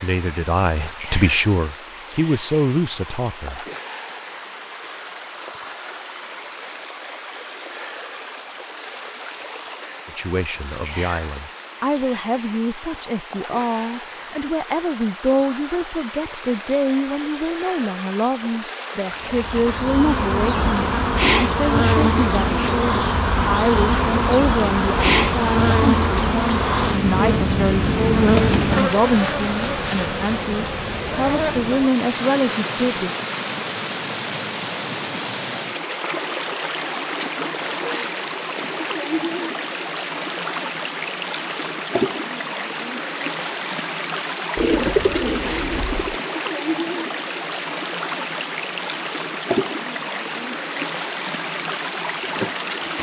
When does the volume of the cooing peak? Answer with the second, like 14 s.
45 s.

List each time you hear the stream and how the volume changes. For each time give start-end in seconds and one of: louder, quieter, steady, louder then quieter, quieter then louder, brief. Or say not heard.
0.0-52.9 louder.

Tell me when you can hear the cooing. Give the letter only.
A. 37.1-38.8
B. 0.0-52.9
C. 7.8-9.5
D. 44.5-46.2
D.